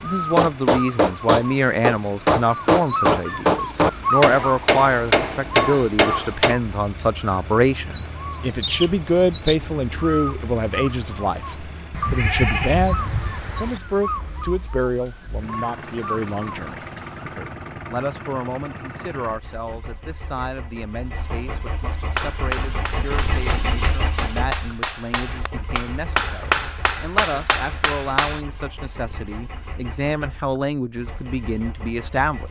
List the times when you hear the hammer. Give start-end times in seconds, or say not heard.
0.3-6.5, 22.1-28.4.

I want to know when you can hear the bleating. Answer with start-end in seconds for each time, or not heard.
11.9-13.8.